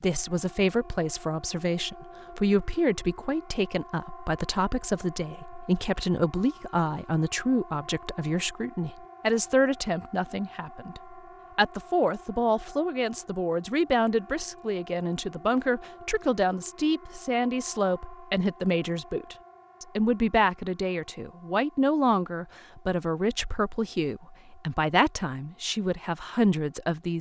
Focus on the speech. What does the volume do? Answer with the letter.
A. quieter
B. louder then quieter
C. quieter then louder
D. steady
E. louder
D.